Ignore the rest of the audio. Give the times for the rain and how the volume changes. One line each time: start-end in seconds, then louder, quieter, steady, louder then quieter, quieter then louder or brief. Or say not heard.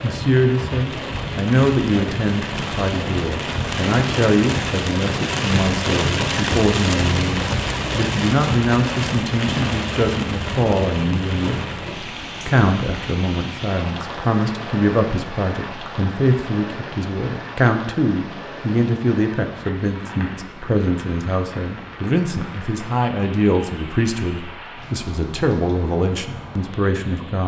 0.0-27.4 quieter.